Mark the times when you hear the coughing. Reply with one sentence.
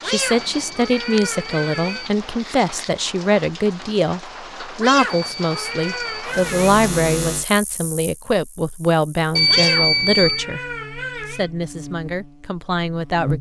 You can't hear the coughing here.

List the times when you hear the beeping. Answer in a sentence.
The beeping can be heard from 0.2 to 2.1 s, from 5.0 to 6.2 s and from 9.3 to 10.4 s.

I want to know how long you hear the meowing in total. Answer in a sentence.
You can hear the meowing for 6 seconds altogether.